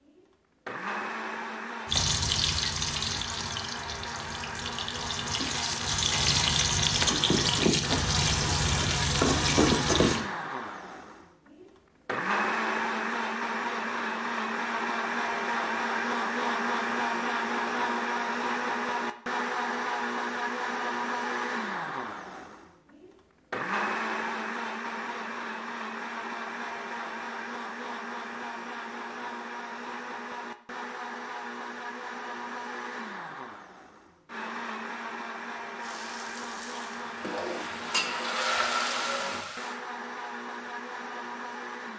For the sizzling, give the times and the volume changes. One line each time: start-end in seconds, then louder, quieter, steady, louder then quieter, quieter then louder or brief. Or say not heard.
1.9-10.2 quieter then louder
35.8-39.8 louder.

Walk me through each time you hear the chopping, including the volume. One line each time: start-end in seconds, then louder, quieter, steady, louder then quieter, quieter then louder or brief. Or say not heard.
not heard.